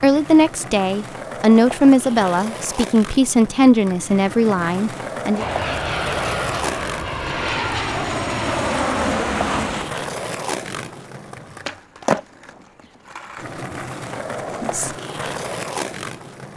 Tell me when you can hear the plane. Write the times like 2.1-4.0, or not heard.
5.3-9.9.